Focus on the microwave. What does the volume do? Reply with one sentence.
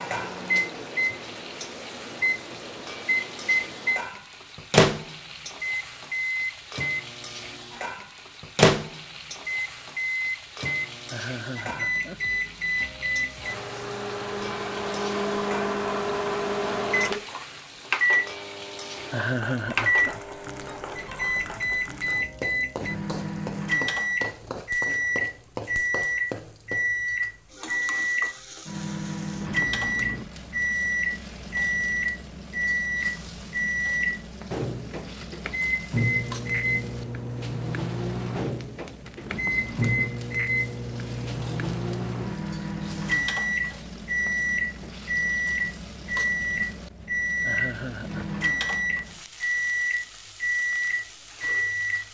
The loudness of the microwave stays about the same.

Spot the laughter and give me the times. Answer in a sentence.
The laughter can be heard from 11.1 to 12.2 s, from 19.1 to 20.1 s and from 47.5 to 48.2 s.